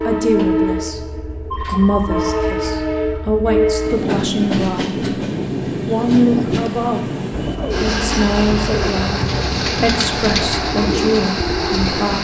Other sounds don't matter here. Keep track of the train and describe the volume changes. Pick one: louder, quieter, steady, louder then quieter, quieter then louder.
steady.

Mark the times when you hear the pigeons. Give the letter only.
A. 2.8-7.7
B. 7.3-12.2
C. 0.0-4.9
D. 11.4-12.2
B.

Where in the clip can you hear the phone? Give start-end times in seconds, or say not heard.
1.5-2.3.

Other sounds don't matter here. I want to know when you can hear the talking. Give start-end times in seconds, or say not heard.
0.1-5.0, 5.8-7.0, 7.8-12.2.